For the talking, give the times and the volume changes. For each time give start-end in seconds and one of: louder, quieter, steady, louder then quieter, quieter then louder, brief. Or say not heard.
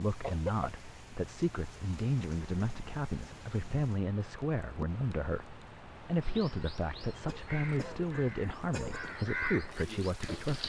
0.0-10.6 steady.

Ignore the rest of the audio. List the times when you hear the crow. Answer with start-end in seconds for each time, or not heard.
6.2-10.6.